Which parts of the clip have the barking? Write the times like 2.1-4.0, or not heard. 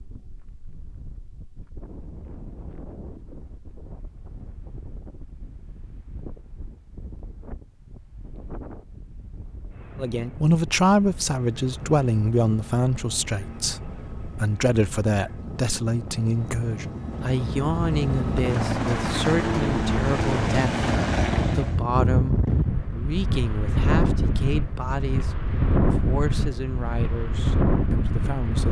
not heard.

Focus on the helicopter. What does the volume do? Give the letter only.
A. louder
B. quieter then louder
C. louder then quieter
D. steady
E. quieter
A.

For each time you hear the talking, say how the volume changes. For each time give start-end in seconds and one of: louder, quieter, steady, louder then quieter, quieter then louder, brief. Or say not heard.
10.0-28.6 quieter.